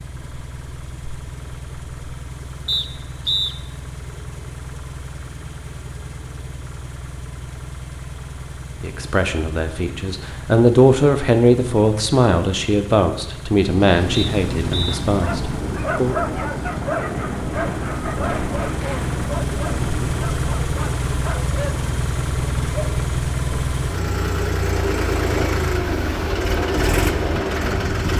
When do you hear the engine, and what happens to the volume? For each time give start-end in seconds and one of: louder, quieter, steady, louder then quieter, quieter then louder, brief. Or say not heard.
0.0-28.1 louder.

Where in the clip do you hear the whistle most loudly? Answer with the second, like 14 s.
3 s.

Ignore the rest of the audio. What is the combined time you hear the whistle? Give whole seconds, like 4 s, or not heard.
2 s.